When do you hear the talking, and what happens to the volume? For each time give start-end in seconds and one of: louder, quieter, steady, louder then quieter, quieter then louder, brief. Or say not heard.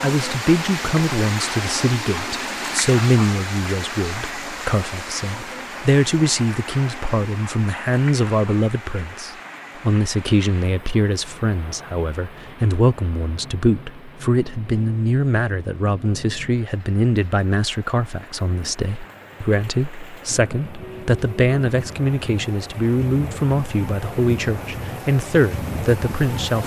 0.0-26.6 steady.